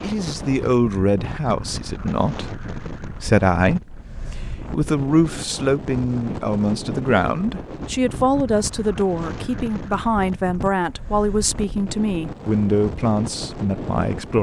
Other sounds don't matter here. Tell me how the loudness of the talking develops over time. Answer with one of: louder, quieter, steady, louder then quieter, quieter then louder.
steady.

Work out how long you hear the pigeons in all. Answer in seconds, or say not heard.
not heard.